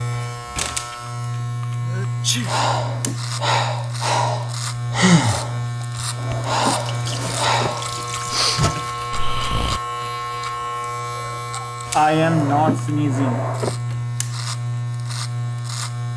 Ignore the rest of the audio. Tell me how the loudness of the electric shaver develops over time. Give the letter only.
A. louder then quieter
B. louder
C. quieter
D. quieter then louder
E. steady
E.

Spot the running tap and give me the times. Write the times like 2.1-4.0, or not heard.
6.7-9.1.